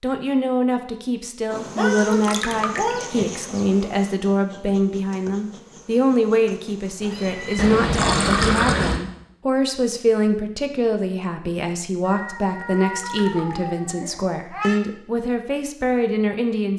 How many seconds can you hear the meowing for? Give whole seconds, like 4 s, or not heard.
5 s.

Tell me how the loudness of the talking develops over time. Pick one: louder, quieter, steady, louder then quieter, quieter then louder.
steady.